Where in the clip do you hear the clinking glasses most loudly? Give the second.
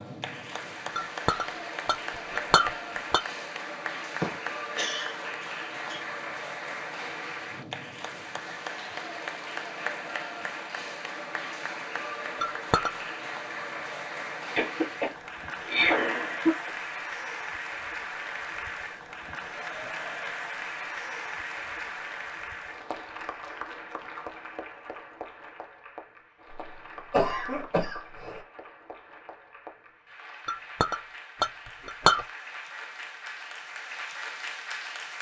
32 s.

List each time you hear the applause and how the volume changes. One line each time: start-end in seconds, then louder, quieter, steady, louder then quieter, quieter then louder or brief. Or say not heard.
0.0-35.1 quieter.